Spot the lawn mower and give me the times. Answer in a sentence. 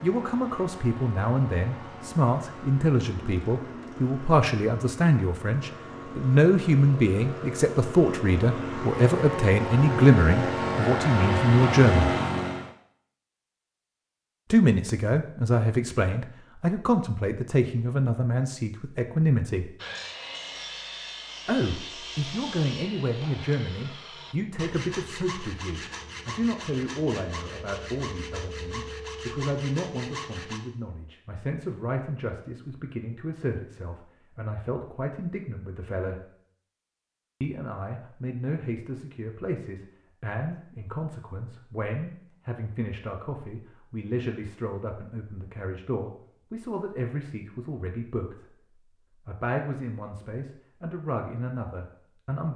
You can hear the lawn mower from 0.0 to 12.7 s.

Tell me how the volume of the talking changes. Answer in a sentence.
The volume of the talking goes down.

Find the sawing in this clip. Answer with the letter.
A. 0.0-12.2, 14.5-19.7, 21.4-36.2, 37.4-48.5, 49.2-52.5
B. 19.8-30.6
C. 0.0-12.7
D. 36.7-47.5
B.